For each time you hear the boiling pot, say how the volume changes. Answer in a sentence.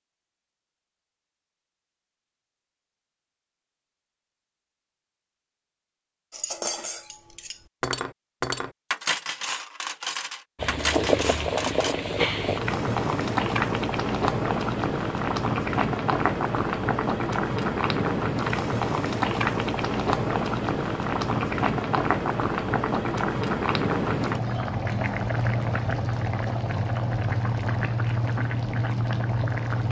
You can hear the boiling pot from 10.6 to 29.8 s, at a steady volume.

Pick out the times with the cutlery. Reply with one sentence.
The cutlery can be heard from 6.3 to 11.9 s.